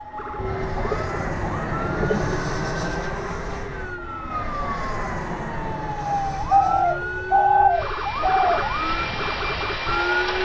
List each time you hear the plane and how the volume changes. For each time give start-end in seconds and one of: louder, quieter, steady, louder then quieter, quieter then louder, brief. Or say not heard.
0.0-10.4 quieter then louder.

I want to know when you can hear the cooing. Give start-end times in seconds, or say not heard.
0.3-2.4, 6.3-8.8.